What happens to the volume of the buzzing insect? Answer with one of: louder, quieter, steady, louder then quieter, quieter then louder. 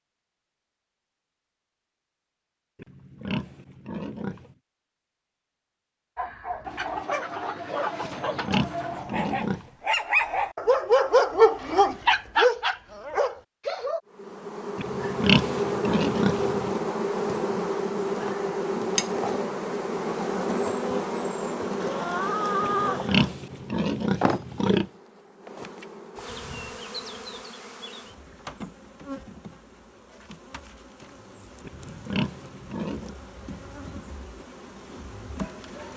quieter.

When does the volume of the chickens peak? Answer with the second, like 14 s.
23 s.